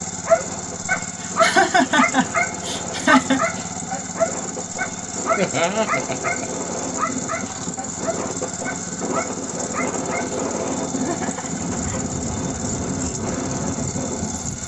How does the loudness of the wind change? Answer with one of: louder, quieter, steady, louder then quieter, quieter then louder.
louder.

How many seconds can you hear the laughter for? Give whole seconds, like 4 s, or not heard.
4 s.